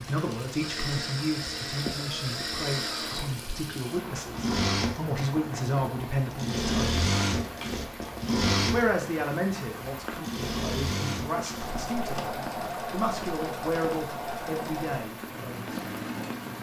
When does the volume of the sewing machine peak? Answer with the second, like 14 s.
7 s.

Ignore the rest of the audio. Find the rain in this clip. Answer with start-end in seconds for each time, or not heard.
0.0-16.5.